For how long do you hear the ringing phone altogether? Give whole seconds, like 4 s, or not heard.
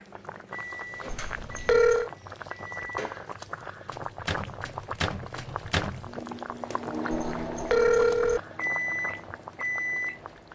2 s.